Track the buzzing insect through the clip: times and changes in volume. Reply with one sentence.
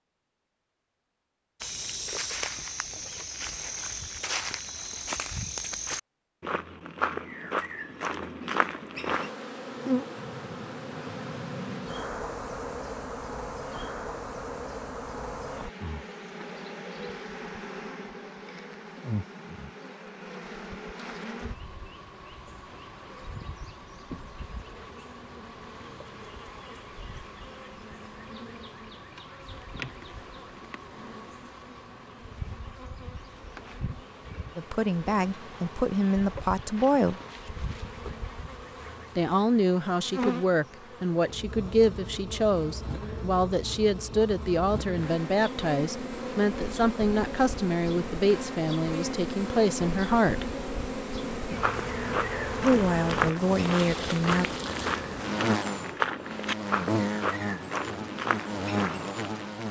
You can hear the buzzing insect from 9.1 to 59.6 s, getting quieter then louder.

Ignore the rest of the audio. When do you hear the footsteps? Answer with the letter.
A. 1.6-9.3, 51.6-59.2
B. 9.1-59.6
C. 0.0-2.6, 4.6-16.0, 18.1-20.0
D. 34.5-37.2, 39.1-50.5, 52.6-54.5
A.